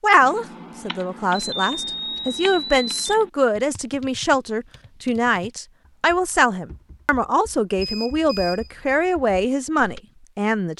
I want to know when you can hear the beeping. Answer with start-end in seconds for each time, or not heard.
1.3-3.1, 7.2-8.7.